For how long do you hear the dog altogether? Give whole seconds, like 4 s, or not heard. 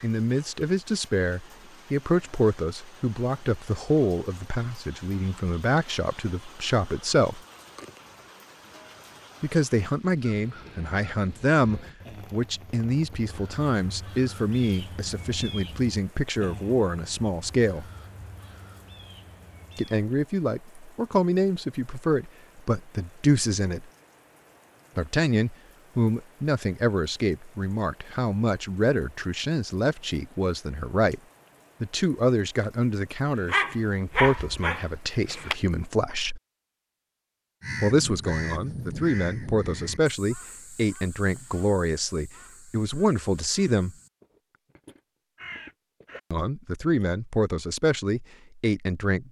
2 s.